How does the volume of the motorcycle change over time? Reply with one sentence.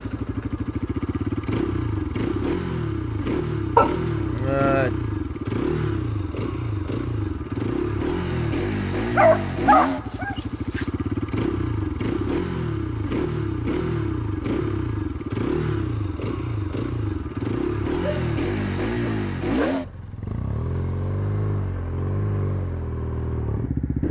The loudness of the motorcycle stays about the same.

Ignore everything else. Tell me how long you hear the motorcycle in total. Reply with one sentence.
The motorcycle can be heard for 24 seconds in total.